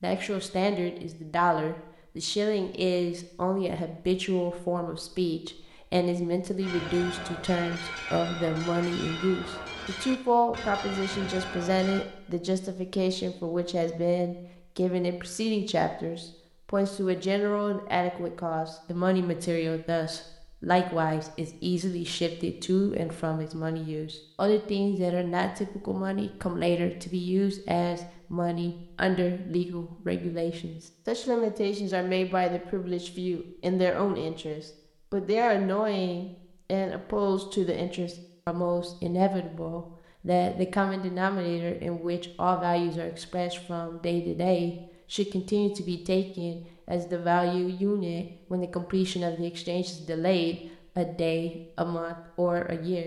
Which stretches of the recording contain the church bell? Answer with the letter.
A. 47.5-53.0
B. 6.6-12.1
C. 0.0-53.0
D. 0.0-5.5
B.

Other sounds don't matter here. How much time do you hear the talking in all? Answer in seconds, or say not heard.
53 s.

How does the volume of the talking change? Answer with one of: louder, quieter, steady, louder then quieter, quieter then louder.
steady.